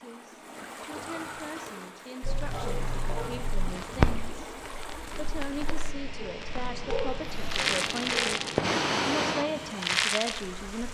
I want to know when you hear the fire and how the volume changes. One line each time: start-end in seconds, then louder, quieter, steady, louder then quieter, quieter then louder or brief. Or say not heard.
2.2-10.8 quieter then louder.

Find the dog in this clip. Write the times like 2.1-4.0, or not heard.
2.2-3.5, 6.2-8.5.